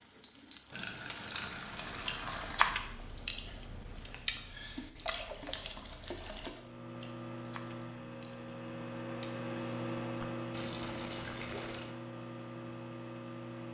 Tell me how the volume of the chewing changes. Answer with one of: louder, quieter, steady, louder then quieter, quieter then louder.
quieter.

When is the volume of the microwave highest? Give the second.
10 s.